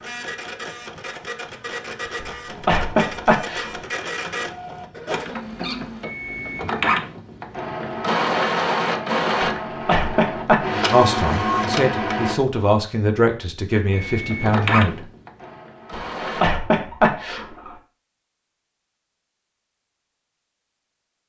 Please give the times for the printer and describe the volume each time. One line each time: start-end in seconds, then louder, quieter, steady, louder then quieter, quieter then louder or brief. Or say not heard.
0.0-12.3 louder
13.9-16.4 brief.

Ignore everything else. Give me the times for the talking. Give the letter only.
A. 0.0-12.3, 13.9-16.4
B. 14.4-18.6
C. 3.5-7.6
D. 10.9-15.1
D.